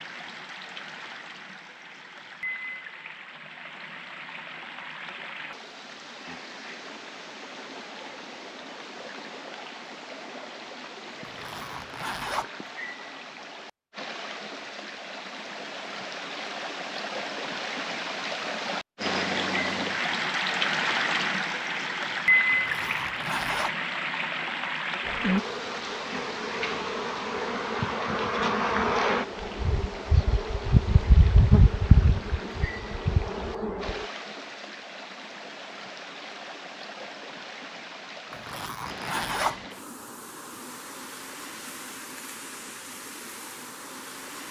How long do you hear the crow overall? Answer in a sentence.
You can't hear the crow here.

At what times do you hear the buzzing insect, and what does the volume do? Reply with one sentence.
You can hear the buzzing insect from 25.0 to 34.1 s, getting louder then quieter.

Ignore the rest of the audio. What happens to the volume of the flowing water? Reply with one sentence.
The volume of the flowing water goes up, then down.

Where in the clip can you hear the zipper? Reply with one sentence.
You can hear the zipper from 11.2 to 12.4 s, from 22.5 to 23.8 s and from 38.3 to 39.6 s.